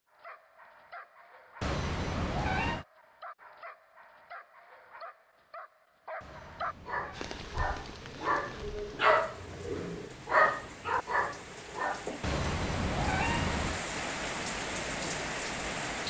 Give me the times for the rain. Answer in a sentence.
The rain can be heard from 7.1 to 16.0 s.